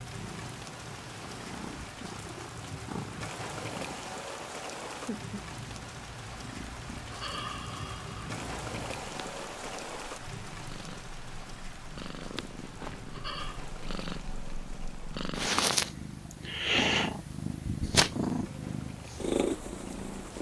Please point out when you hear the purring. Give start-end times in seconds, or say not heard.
0.0-20.3.